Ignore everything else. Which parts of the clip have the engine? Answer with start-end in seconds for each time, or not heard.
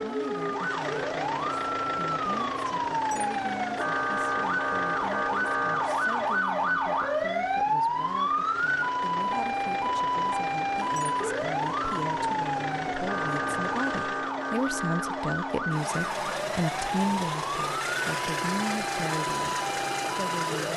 0.0-20.7.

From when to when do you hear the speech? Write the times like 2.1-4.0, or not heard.
0.0-20.7.